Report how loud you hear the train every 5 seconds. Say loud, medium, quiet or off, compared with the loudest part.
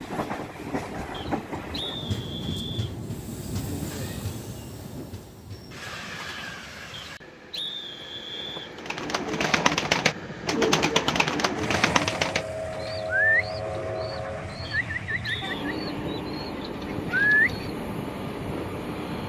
loud, medium, loud, loud.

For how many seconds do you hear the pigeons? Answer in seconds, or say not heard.
9 s.